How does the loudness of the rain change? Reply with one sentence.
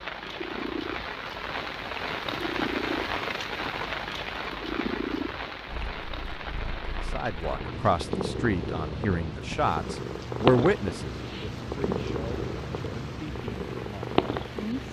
The volume of the rain goes down.